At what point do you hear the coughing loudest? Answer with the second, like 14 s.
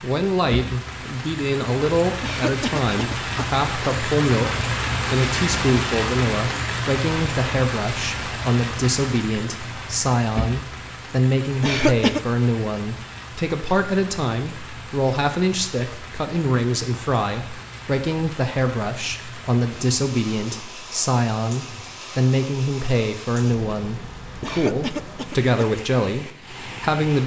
12 s.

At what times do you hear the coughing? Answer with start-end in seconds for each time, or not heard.
2.2-3.5, 11.6-12.2, 24.4-25.6.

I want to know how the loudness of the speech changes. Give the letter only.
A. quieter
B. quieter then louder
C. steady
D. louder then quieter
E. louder
C.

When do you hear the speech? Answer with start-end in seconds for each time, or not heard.
0.0-27.2.